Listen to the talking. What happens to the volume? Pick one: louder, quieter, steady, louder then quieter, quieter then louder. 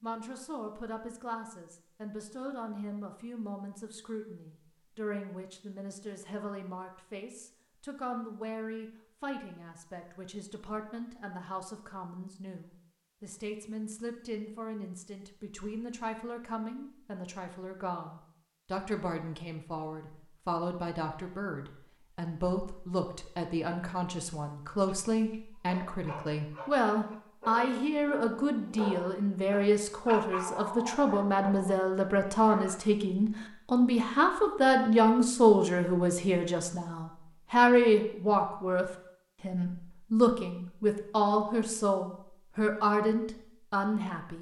louder.